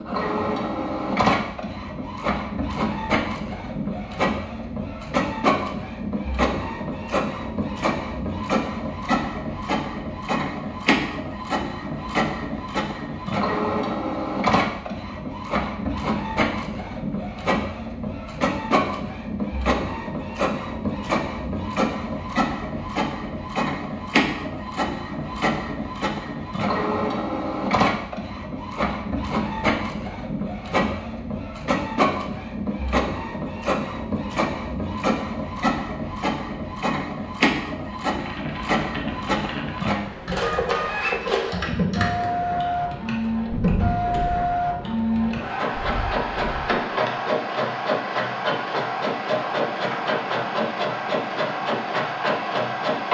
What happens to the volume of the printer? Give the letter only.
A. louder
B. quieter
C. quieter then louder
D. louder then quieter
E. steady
E.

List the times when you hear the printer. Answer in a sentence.
You can hear the printer from 0.0 to 53.0 s.